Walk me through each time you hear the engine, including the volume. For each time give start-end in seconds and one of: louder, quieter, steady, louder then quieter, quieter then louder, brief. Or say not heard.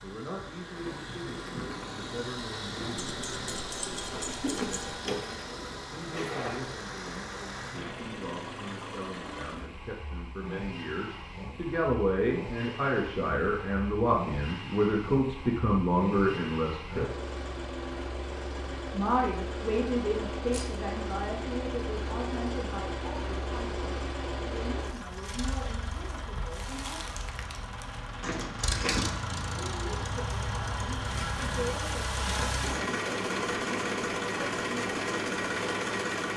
0.0-36.3 louder.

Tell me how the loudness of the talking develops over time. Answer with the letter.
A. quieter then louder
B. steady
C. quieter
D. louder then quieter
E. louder
D.